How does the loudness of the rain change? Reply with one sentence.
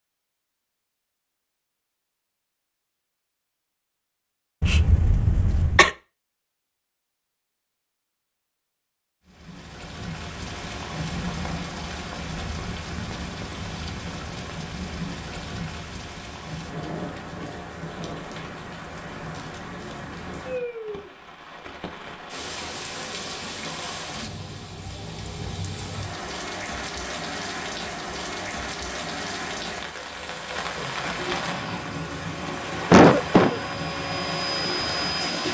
The loudness of the rain stays about the same.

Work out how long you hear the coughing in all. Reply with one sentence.
You can hear the coughing for 2 seconds altogether.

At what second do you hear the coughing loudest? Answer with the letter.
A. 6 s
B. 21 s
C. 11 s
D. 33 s
D.